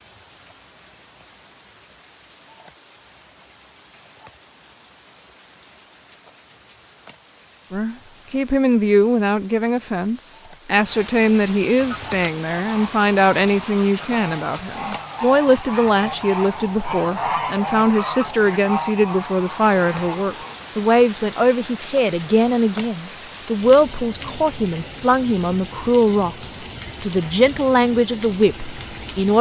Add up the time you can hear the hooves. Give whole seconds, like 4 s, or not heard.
not heard.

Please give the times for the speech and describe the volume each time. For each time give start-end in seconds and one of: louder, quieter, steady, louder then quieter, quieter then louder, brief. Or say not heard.
7.7-29.3 steady.